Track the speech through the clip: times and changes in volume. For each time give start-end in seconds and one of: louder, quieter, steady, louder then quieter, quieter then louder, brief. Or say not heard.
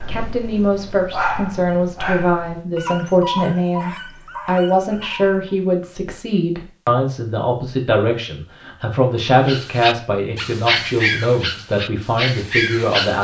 0.0-13.1 steady.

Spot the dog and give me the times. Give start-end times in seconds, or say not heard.
0.0-5.4, 9.4-13.1.